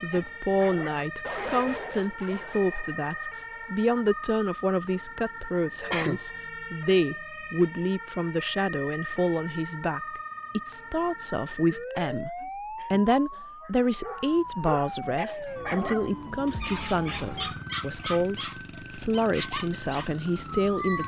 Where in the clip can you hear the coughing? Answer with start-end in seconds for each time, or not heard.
5.8-6.2, 11.8-13.9.